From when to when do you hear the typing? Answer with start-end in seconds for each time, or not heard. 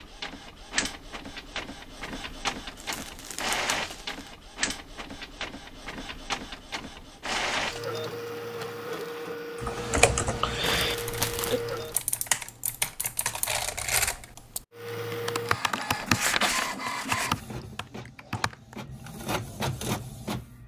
9.6-18.8.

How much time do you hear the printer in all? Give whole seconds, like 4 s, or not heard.
18 s.